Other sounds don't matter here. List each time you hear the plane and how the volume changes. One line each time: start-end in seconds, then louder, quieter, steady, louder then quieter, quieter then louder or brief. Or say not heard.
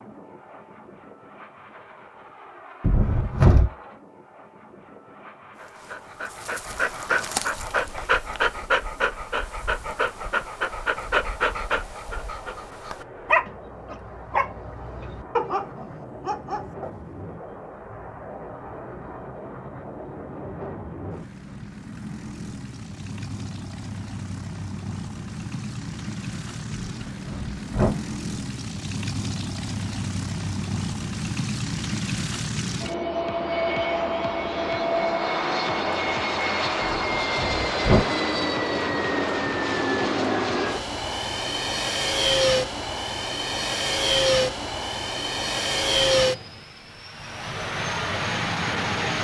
0.0-49.2 louder.